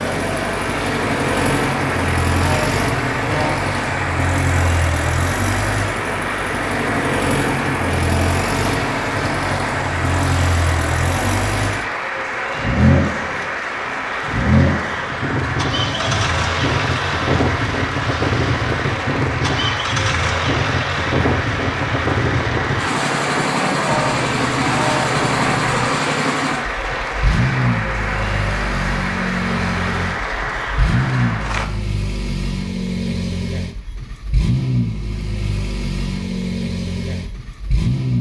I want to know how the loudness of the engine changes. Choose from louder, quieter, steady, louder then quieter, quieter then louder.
steady.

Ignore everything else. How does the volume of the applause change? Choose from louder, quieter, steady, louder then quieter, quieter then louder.
steady.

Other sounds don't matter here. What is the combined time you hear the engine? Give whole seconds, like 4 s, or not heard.
38 s.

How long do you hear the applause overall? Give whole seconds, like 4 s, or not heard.
32 s.